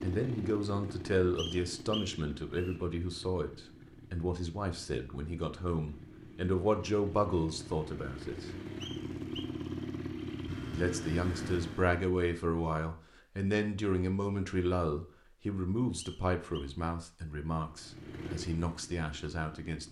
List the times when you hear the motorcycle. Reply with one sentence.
You can hear the motorcycle from 0.0 to 12.1 s and from 17.6 to 19.8 s.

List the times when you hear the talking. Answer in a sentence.
You can hear the talking from 0.0 to 8.5 s and from 10.7 to 19.8 s.